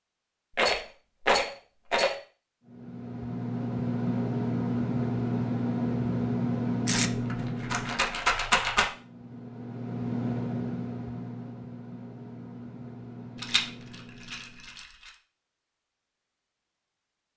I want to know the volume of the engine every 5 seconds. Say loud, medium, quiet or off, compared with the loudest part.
loud, loud, medium, off.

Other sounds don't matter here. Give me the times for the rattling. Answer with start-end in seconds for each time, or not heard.
0.6-2.1, 7.1-8.8, 13.3-15.1.